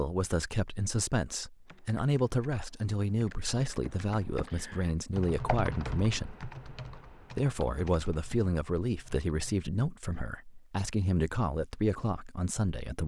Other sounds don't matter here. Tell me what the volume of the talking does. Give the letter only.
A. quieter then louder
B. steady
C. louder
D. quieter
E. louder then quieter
B.